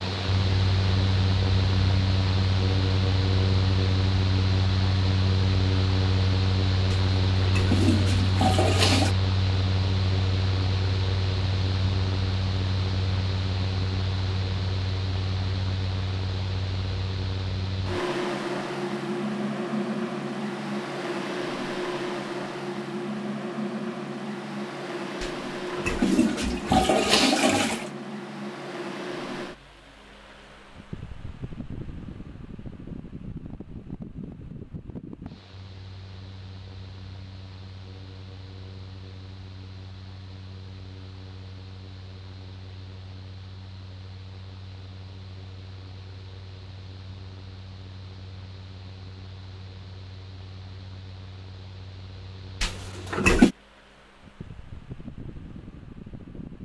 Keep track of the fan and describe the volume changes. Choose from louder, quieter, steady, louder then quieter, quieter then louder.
quieter.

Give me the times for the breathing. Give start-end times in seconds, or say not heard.
not heard.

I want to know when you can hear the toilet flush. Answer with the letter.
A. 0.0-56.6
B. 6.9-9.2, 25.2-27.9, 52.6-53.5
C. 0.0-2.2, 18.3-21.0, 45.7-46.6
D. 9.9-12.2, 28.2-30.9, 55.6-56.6
B.